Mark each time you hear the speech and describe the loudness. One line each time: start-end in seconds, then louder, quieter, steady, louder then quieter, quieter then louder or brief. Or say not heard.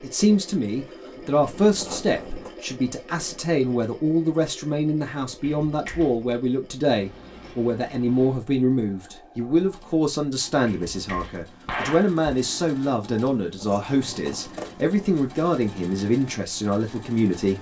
0.0-17.5 steady.